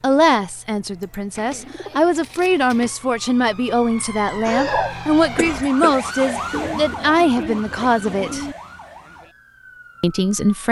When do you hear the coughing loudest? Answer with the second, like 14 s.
5 s.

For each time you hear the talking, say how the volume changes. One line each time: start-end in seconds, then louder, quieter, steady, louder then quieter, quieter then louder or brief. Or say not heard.
0.0-8.4 louder
10.0-10.6 brief.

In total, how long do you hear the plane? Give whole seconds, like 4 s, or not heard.
not heard.